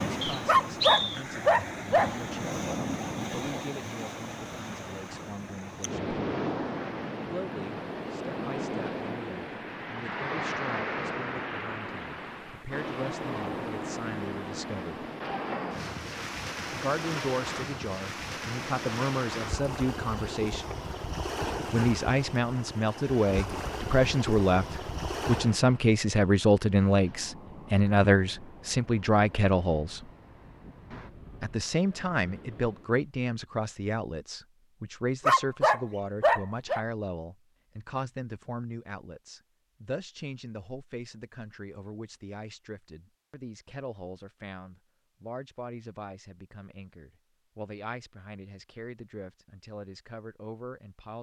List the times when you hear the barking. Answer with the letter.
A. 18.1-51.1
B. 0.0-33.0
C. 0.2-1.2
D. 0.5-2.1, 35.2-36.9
D.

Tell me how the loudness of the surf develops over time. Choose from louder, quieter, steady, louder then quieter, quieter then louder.
quieter.